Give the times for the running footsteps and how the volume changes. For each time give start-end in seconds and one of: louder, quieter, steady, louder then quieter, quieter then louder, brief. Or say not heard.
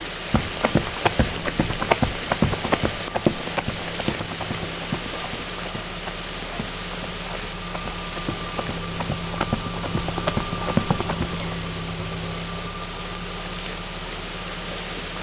0.2-11.6 quieter then louder.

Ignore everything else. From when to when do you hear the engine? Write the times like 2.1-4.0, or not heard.
0.0-15.1.